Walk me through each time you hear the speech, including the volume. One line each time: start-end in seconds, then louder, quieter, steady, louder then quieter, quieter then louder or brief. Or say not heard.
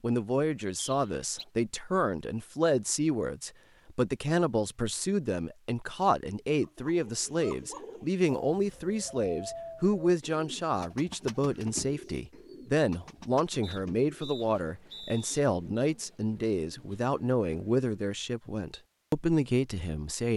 0.0-20.3 steady.